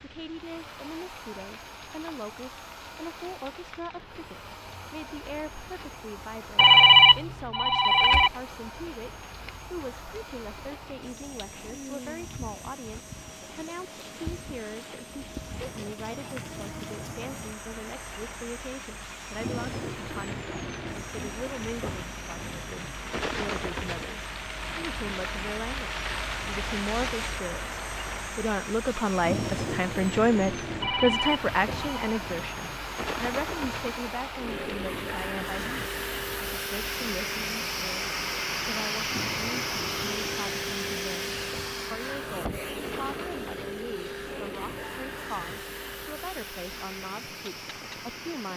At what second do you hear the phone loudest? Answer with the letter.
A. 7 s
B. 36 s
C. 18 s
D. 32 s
A.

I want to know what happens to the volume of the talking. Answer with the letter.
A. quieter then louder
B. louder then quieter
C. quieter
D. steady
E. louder
B.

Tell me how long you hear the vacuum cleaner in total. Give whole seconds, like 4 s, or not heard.
48 s.